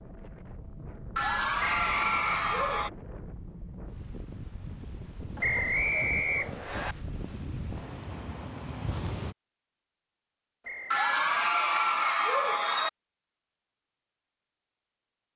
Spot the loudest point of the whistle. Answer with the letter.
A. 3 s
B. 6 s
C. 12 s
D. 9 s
B.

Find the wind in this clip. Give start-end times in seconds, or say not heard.
0.0-9.3.